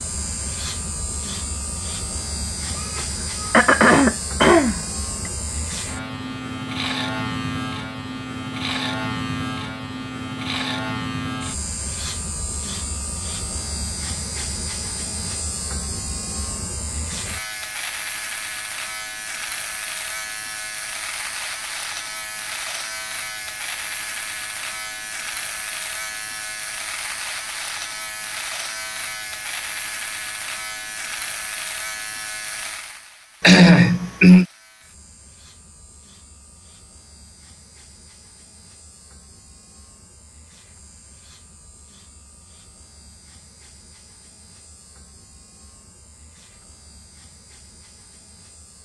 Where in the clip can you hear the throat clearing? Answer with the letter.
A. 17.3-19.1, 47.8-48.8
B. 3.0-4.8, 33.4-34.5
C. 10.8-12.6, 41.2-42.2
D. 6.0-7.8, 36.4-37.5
B.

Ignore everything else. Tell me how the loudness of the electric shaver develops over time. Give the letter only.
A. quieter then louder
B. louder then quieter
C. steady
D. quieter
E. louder
D.